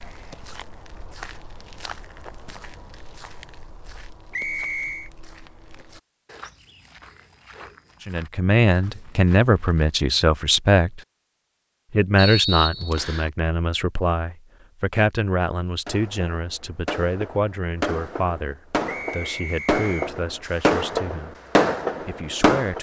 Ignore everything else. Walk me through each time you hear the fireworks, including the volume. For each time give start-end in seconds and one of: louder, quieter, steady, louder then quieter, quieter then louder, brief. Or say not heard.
15.8-22.7 louder.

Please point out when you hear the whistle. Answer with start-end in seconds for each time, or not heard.
4.3-5.1, 12.2-13.3, 18.9-20.1.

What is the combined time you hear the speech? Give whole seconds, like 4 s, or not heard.
13 s.